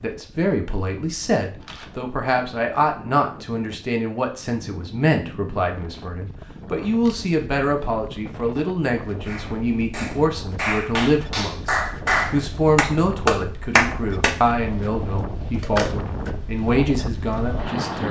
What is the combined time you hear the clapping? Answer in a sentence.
You can hear the clapping for 5 seconds altogether.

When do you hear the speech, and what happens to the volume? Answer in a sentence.
The speech can be heard from 0.0 to 18.0 s, at a steady volume.